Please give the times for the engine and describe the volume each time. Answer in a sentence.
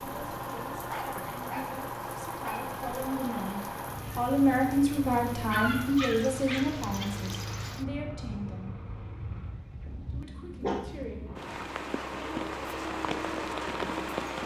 The engine can be heard from 0.0 to 14.4 s, getting quieter then louder.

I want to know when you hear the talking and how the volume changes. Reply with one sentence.
The talking can be heard from 0.0 to 8.8 s, getting louder then quieter; and briefly from 10.1 to 11.3 s.